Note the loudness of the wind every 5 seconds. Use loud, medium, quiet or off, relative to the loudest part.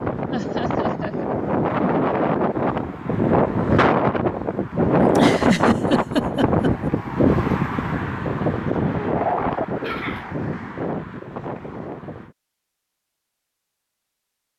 loud, loud, medium.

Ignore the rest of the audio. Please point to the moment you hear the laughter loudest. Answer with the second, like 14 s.
5 s.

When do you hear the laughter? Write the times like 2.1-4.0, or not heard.
0.3-1.2, 5.0-6.9, 9.8-10.3.